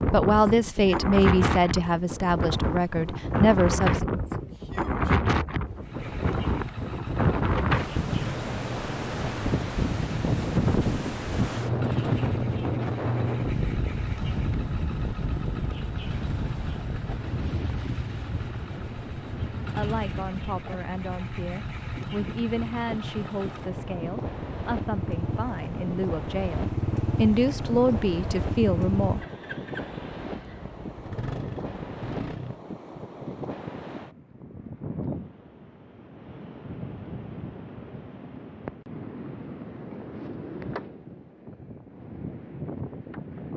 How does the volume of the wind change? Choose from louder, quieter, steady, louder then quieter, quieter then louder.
quieter.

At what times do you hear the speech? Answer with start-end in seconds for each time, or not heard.
0.0-4.0, 19.7-29.2.